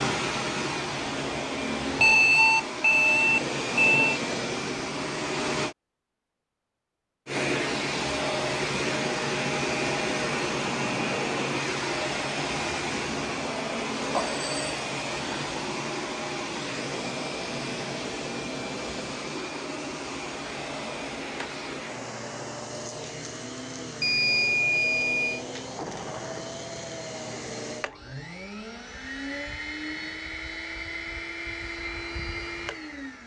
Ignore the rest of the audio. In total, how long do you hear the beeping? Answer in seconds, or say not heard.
4 s.